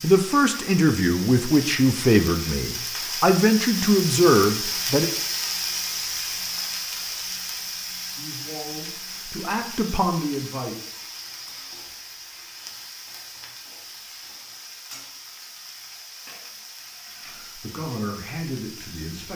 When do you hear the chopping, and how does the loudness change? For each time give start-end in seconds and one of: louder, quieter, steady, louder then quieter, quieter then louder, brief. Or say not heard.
not heard.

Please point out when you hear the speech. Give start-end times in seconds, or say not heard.
0.0-5.1, 8.2-10.8, 17.2-19.3.